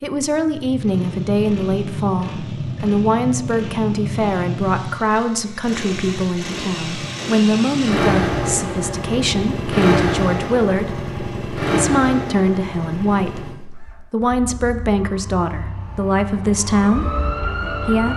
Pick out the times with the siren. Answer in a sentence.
The siren can be heard from 15.0 to 18.1 s.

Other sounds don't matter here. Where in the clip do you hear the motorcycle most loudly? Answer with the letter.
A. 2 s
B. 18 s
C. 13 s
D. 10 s
D.